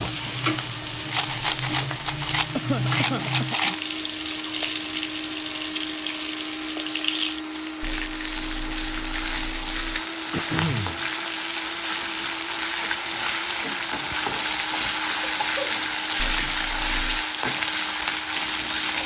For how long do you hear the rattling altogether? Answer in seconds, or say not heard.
6 s.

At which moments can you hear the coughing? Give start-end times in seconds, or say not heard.
2.5-3.8, 10.3-11.0, 15.2-16.2.